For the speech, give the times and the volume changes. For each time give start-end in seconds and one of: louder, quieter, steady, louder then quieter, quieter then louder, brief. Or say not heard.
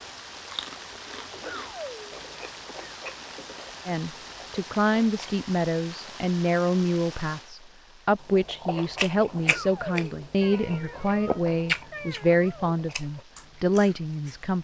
3.9-14.5 steady.